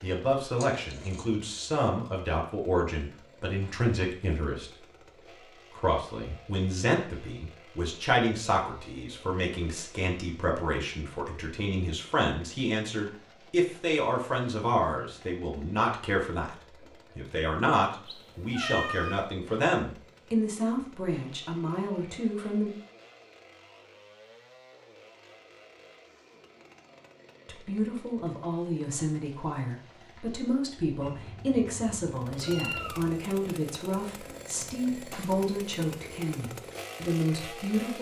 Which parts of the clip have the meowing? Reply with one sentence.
You can hear the meowing from 0.6 to 1.3 s, from 18.1 to 19.2 s and from 31.0 to 33.0 s.